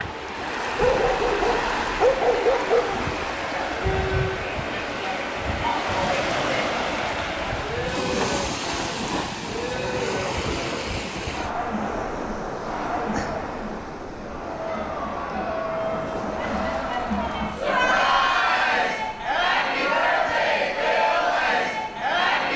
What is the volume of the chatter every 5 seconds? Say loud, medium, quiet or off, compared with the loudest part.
medium, medium, medium, loud, loud.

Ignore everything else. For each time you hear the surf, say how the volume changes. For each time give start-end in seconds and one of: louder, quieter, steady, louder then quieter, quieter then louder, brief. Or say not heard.
0.0-22.5 quieter.